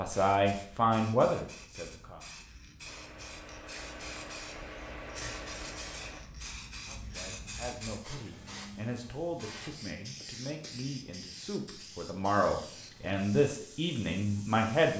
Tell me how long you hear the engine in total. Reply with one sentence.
You can hear the engine for 3 seconds altogether.